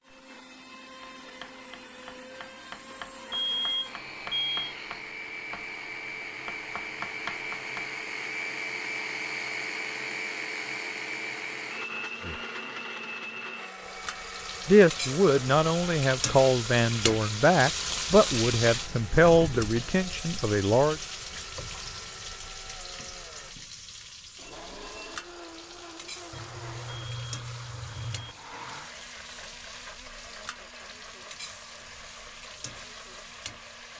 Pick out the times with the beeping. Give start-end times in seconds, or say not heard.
3.3-4.8, 26.3-28.4.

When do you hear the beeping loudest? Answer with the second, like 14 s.
4 s.